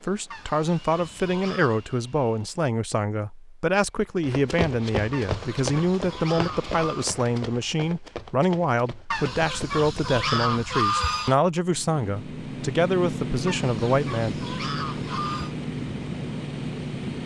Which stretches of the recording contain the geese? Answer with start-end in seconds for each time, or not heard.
0.3-1.9, 5.1-7.0, 9.1-11.3, 13.4-15.6.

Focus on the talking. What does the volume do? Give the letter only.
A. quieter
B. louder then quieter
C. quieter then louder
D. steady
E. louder
D.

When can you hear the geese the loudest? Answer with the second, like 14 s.
11 s.